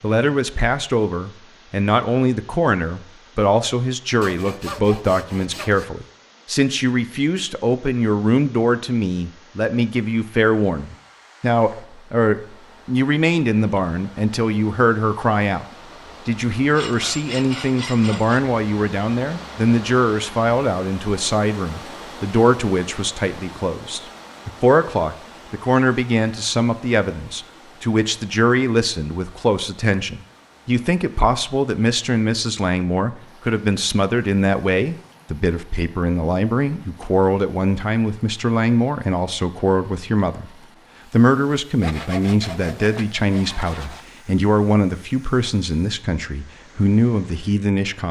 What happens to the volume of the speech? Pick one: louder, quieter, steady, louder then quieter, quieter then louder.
steady.